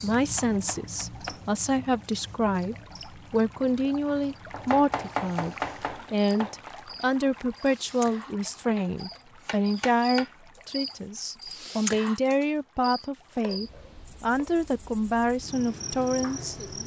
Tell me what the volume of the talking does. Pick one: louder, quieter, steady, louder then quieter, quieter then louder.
steady.